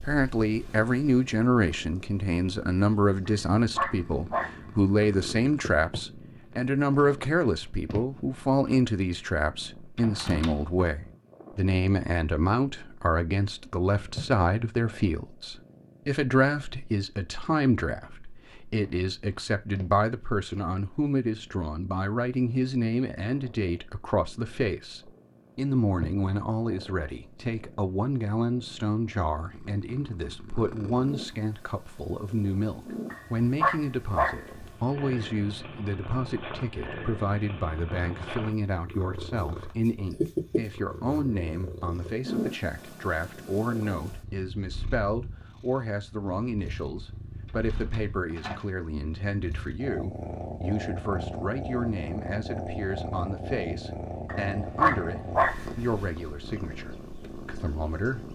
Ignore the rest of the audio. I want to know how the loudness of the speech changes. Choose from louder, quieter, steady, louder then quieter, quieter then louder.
quieter.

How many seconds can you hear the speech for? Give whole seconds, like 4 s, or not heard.
58 s.